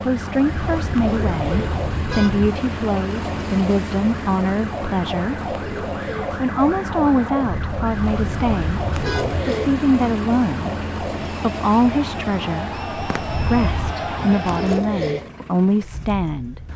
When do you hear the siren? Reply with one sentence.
You can hear the siren from 0.0 to 14.8 s.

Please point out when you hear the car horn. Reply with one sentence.
The car horn can be heard from 0.5 to 2.5 s, from 7.4 to 9.4 s and from 13.2 to 13.9 s.